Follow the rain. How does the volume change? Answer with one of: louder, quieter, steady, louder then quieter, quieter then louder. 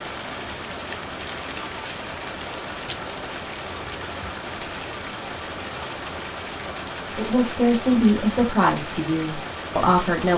steady.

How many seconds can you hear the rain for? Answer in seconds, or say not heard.
10 s.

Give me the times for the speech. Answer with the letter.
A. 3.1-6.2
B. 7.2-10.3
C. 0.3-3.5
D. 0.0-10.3
B.